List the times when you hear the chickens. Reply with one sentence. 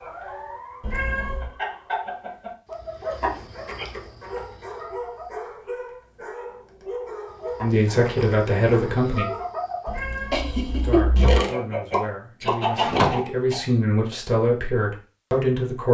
The chickens can be heard from 0.0 to 5.4 s and from 7.3 to 13.6 s.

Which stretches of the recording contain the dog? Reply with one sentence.
You can hear the dog from 3.0 to 9.5 s.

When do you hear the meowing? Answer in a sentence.
You can hear the meowing from 0.8 to 1.6 s and from 9.8 to 11.3 s.